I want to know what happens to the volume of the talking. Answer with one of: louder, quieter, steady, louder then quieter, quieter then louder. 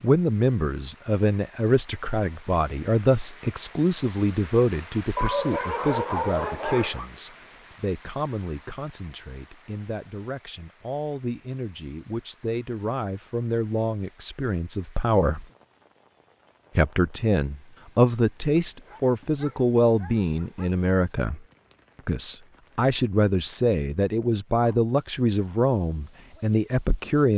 quieter then louder.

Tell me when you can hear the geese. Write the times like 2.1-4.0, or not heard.
not heard.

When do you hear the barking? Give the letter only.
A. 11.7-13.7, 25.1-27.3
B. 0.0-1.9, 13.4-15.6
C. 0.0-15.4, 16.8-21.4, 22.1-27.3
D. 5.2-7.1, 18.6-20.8
D.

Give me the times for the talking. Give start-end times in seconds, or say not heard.
0.0-15.4, 16.8-21.4, 22.1-27.3.